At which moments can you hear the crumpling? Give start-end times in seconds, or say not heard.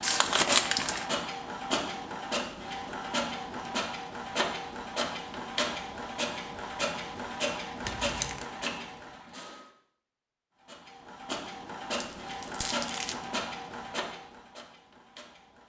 0.0-1.1, 7.8-8.4, 11.9-13.2.